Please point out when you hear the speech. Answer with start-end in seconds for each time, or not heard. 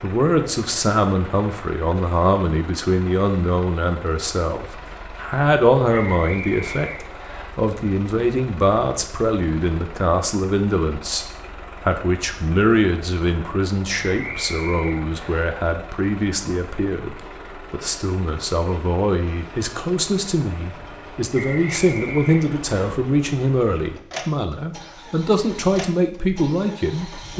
0.0-27.3.